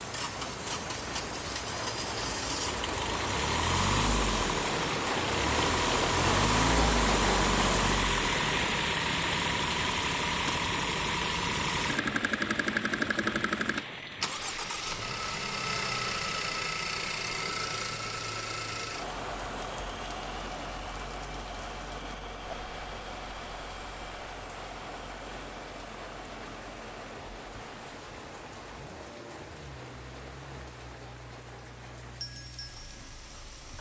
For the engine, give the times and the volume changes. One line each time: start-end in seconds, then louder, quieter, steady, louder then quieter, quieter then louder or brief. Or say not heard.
0.0-33.7 quieter.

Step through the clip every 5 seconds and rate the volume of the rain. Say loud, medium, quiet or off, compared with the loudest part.
medium, loud, medium, quiet, quiet, quiet, quiet.